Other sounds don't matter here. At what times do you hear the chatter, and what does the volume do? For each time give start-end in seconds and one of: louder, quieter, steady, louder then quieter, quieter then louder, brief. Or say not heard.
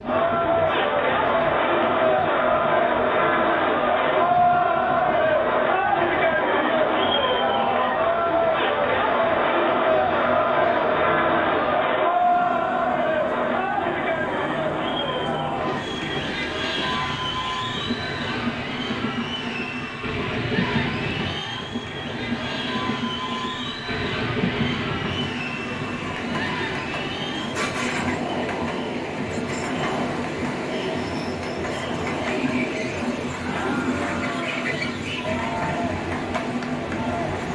0.0-37.4 quieter.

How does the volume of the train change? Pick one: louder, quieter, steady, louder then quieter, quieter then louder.
louder.